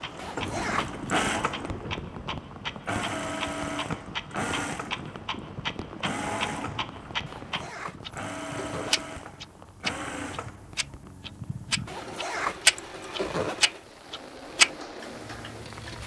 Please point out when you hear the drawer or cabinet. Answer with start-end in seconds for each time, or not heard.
not heard.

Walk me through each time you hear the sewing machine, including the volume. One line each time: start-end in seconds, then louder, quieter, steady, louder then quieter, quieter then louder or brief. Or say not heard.
0.0-16.0 quieter.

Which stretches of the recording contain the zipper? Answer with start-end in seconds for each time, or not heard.
0.1-1.1, 7.2-9.2, 11.8-13.6.